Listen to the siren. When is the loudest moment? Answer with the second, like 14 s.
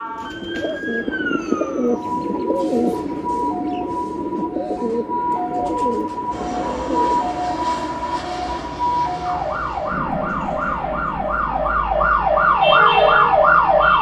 13 s.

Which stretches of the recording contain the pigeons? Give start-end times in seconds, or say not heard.
0.0-7.5.